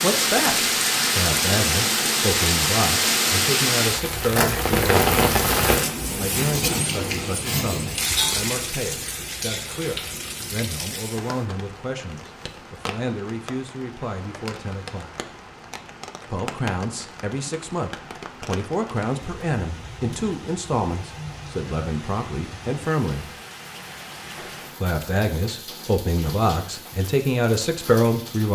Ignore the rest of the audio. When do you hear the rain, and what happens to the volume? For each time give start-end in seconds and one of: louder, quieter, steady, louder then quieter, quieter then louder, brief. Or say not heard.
0.0-28.5 quieter.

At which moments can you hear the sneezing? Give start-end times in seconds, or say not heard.
not heard.